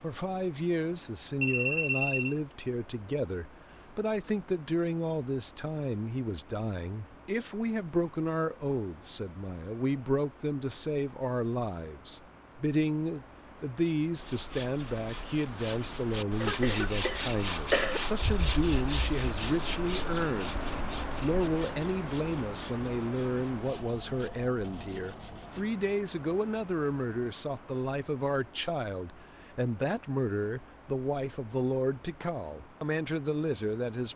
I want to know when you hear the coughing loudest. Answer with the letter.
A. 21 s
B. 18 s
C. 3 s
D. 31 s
B.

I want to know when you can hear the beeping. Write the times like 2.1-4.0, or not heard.
1.4-2.4.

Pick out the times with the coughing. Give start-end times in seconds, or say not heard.
16.4-18.0.